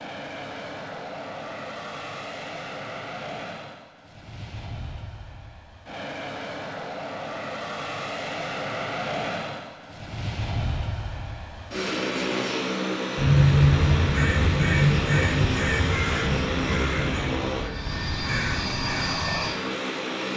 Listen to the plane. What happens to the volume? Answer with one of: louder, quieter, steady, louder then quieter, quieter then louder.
louder.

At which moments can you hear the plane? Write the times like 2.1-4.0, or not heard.
0.0-20.3.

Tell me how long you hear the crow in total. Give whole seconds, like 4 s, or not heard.
6 s.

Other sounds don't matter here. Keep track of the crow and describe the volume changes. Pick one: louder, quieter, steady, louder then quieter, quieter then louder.
quieter.